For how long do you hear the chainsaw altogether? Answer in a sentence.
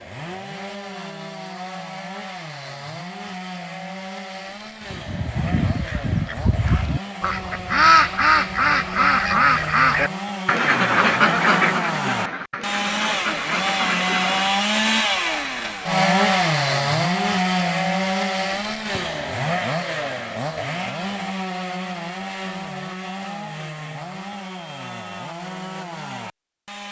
You can hear the chainsaw for 27 seconds altogether.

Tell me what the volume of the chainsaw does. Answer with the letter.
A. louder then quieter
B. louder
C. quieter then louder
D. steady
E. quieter
A.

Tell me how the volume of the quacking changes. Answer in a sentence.
The loudness of the quacking goes up, then down.